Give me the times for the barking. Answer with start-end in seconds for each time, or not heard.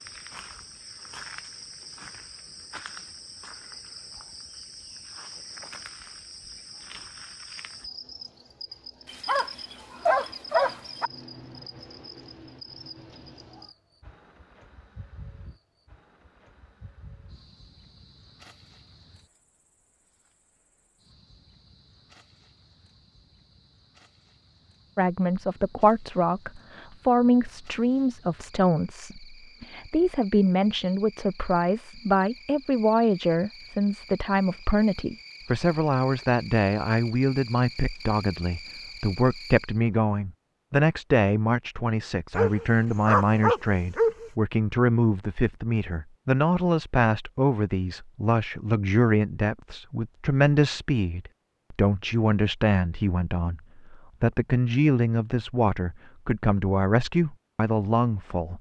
9.1-11.1, 42.4-44.3.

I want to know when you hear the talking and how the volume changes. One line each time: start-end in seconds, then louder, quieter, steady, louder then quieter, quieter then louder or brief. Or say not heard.
24.9-58.5 steady.